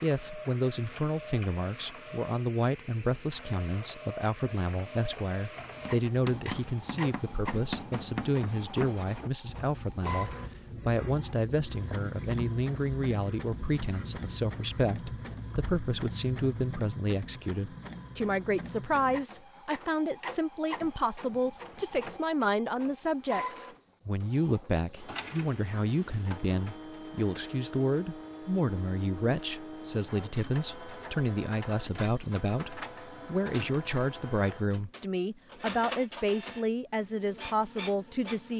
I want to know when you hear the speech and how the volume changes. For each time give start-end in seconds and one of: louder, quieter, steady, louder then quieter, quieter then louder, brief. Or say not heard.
0.0-38.5 steady.